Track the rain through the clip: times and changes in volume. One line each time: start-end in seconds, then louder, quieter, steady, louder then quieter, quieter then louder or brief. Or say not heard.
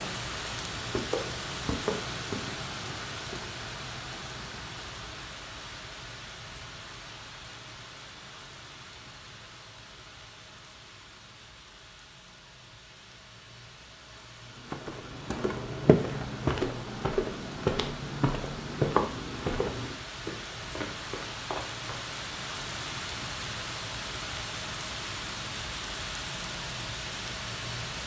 0.0-28.0 quieter then louder.